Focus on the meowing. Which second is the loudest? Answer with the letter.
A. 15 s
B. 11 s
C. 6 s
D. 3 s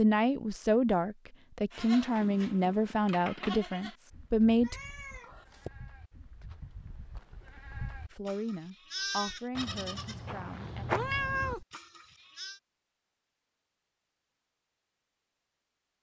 B.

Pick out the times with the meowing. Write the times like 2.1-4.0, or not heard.
4.6-5.7, 10.9-11.7.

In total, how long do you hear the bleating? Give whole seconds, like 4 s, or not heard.
11 s.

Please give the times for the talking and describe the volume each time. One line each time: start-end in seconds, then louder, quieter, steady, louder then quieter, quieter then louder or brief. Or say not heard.
0.0-4.8 steady
8.1-10.8 brief.